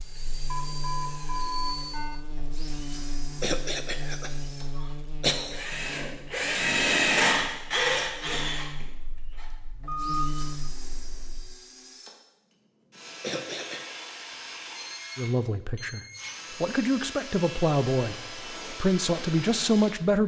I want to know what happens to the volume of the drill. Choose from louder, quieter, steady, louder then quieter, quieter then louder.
louder then quieter.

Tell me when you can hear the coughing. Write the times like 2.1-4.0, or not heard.
3.4-5.8, 13.2-13.8.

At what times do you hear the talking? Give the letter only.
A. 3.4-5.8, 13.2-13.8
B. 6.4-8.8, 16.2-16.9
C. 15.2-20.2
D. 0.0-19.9
C.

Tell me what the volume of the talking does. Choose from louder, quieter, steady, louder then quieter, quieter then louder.
louder.